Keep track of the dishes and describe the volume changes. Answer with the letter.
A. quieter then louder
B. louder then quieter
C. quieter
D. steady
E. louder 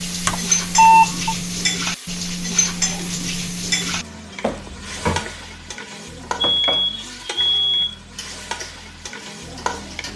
C.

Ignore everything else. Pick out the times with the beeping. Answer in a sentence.
The beeping can be heard from 0.2 to 1.4 s and from 6.4 to 8.0 s.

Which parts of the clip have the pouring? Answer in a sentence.
The pouring can't be heard in this clip.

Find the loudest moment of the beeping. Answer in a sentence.
The loudest moment of the beeping is at 1 second.